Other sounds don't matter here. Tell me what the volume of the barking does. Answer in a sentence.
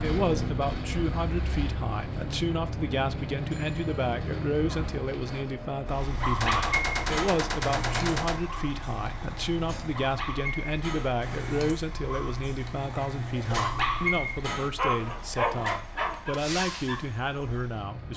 The loudness of the barking goes down, then up.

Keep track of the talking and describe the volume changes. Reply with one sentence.
The volume of the talking stays about the same.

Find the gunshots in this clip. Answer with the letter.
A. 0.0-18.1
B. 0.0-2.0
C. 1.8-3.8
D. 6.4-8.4
D.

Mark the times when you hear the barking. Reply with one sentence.
The barking can be heard from 6.1 to 17.6 s.